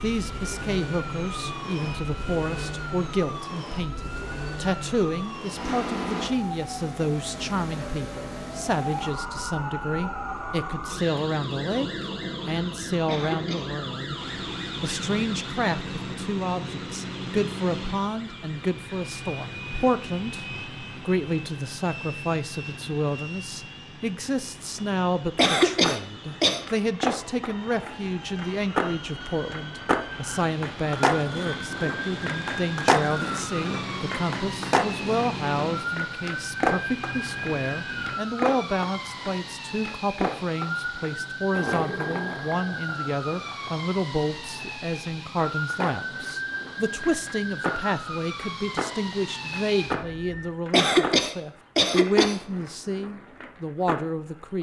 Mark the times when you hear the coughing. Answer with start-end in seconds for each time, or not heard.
13.1-13.7, 25.4-26.6, 50.7-52.4.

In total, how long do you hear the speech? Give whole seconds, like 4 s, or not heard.
53 s.